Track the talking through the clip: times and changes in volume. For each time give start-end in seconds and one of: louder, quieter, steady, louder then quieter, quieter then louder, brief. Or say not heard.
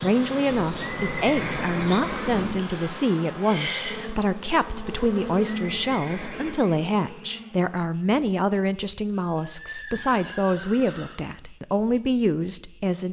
0.0-13.0 steady.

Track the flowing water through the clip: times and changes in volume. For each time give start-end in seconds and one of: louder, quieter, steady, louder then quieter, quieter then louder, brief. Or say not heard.
not heard.